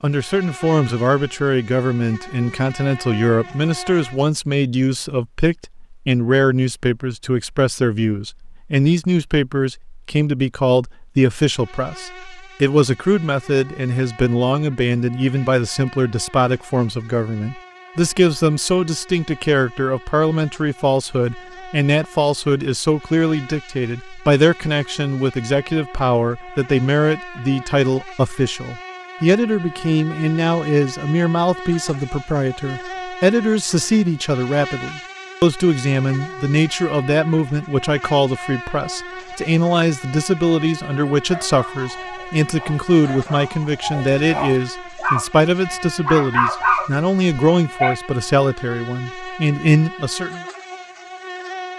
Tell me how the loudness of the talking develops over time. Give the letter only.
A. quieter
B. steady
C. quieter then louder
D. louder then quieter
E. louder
B.